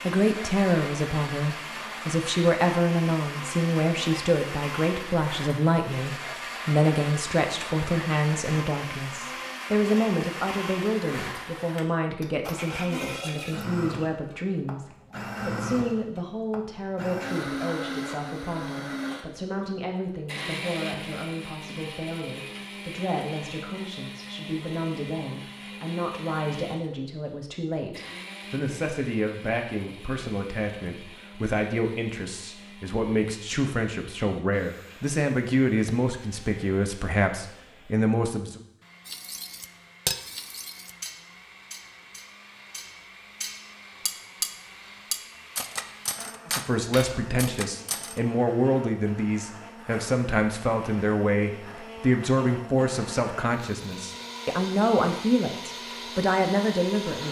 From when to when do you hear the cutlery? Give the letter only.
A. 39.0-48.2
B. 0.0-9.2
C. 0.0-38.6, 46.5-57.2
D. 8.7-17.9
A.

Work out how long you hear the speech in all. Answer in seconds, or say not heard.
49 s.